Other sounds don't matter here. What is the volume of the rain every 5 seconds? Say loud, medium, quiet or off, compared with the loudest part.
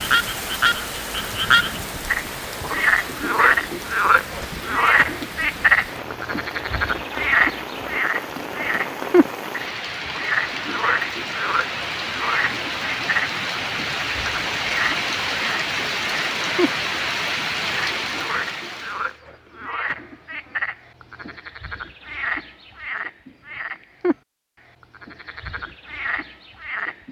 medium, medium, loud, loud, off, off.